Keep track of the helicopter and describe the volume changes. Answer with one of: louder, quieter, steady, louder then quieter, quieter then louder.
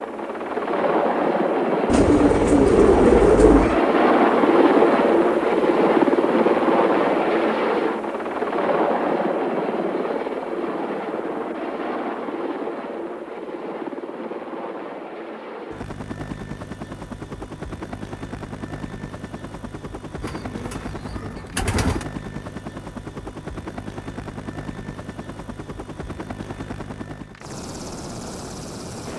quieter.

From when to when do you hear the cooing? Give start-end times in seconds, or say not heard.
1.9-3.8, 20.2-22.1.